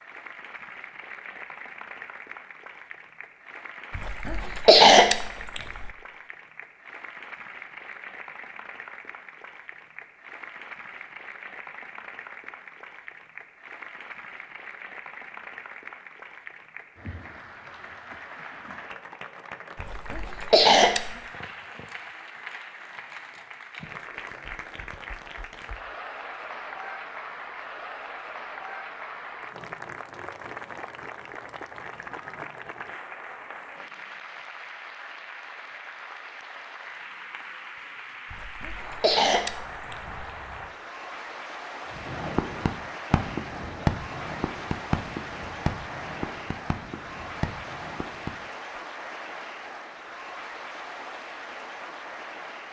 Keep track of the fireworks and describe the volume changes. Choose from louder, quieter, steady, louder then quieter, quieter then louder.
quieter.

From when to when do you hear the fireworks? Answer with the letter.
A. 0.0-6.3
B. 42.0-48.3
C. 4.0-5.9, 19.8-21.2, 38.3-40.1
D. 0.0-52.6
B.